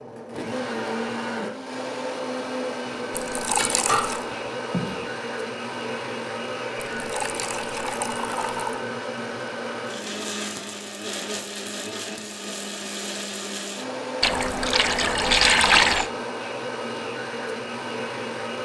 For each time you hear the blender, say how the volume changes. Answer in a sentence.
The blender can be heard from 0.0 to 18.6 s, at a steady volume.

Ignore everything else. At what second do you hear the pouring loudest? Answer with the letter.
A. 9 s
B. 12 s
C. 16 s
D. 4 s
C.